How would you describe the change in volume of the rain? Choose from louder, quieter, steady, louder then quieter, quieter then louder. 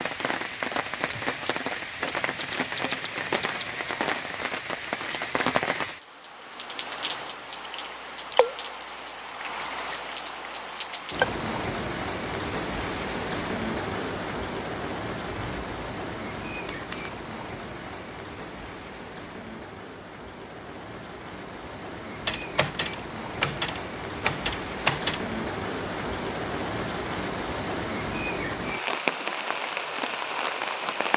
quieter then louder.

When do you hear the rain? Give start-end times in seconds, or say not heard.
0.0-31.1.